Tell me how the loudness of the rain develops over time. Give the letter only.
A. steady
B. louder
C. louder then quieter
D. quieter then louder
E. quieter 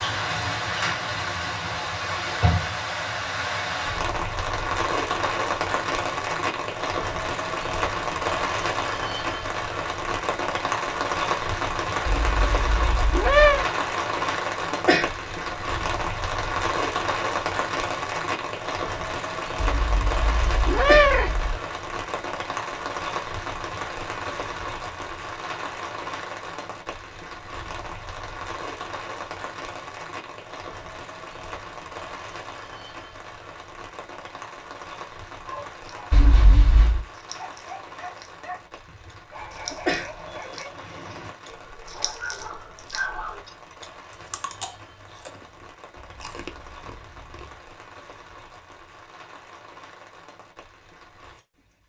E.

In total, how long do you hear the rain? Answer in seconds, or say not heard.
52 s.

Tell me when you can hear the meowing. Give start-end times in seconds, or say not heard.
12.2-13.7, 19.6-21.6, 36.1-37.0.